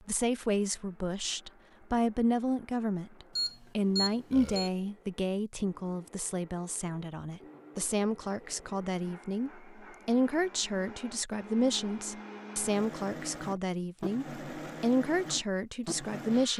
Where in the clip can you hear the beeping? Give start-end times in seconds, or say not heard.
3.4-4.7.